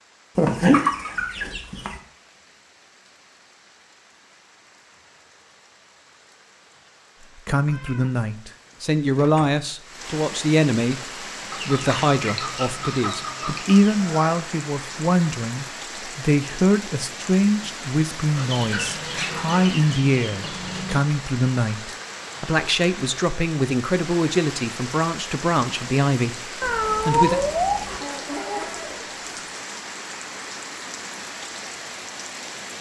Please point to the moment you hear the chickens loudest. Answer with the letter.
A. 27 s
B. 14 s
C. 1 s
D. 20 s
C.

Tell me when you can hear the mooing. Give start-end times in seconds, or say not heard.
not heard.